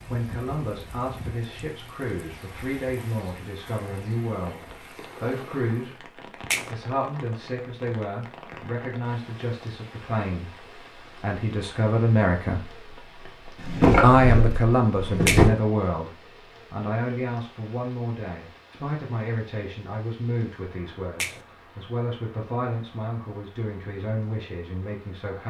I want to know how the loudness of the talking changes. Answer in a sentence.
The volume of the talking goes up, then down.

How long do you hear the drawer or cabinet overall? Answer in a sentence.
You can hear the drawer or cabinet for 2 seconds altogether.